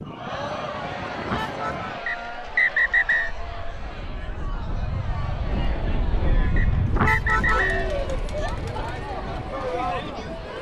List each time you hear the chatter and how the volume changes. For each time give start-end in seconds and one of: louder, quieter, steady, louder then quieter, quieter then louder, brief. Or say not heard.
0.0-10.5 quieter then louder.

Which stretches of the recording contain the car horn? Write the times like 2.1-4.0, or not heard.
1.1-1.9, 6.8-7.7.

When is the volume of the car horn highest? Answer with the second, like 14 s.
7 s.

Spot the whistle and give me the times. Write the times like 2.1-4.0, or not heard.
2.0-3.3, 6.5-7.9.